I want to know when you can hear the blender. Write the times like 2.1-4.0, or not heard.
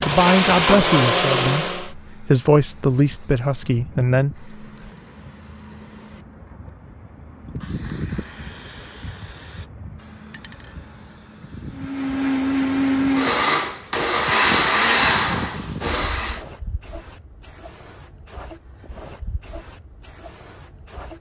0.0-1.9, 11.7-16.4.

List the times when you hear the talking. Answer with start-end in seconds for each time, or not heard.
0.1-4.5.